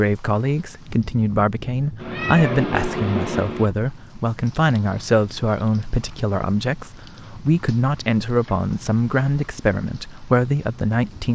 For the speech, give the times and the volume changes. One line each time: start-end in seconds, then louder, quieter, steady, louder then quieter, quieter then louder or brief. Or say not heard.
0.0-11.3 steady.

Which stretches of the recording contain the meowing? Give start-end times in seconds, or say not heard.
1.9-3.7.